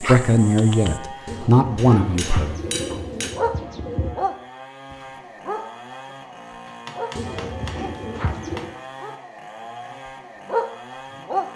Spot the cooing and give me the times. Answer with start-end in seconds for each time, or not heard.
1.2-4.2, 7.2-8.8.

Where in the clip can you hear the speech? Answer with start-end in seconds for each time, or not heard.
0.0-2.6.